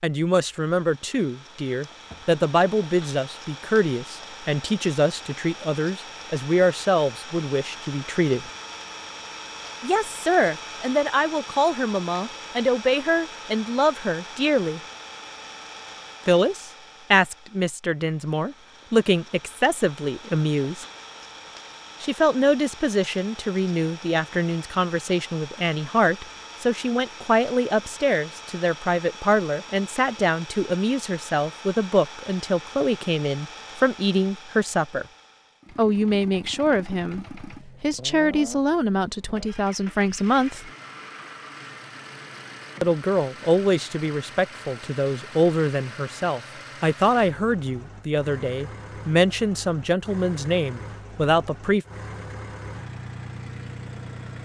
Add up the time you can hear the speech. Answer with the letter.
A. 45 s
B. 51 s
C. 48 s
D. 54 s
A.